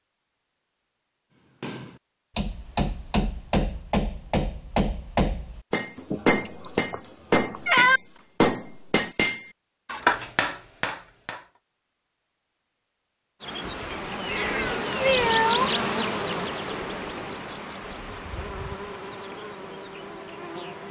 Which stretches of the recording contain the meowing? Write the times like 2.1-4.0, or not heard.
6.0-8.0, 14.2-15.8.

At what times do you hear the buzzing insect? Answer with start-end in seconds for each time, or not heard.
13.4-20.8.